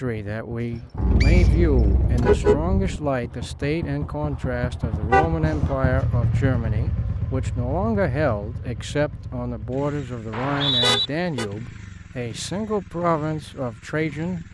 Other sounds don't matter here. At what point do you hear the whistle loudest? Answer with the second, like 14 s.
11 s.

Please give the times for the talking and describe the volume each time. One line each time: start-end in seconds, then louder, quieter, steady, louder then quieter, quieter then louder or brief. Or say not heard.
0.0-14.4 steady.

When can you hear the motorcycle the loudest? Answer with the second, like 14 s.
6 s.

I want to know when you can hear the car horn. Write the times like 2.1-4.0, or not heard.
0.9-3.0, 5.1-5.7, 10.8-11.5.